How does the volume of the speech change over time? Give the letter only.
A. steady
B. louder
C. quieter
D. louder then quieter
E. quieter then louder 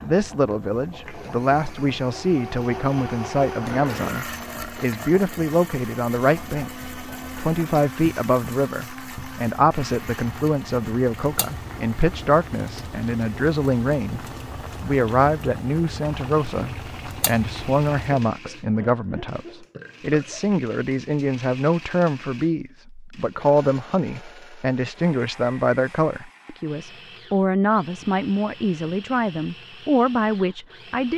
A.